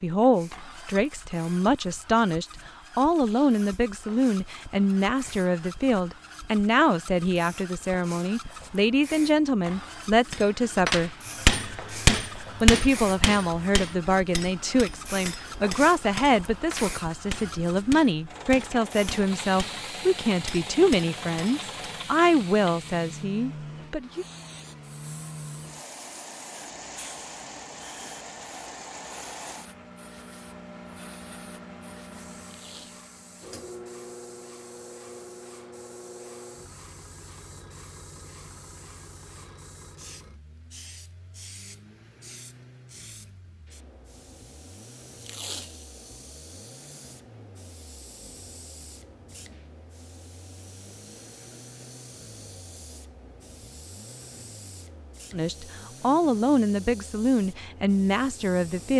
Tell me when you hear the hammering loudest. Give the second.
12 s.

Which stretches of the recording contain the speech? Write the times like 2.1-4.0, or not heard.
0.0-11.1, 12.6-24.2, 55.3-58.9.